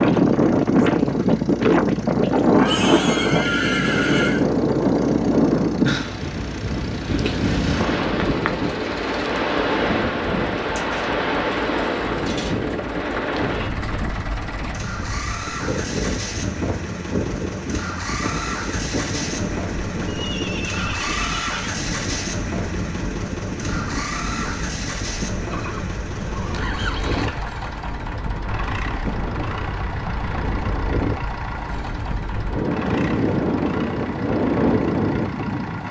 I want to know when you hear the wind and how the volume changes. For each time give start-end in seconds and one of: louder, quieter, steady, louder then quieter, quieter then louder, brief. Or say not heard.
0.0-35.8 quieter then louder.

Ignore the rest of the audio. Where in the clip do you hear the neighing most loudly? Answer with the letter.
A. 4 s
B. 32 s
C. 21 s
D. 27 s
A.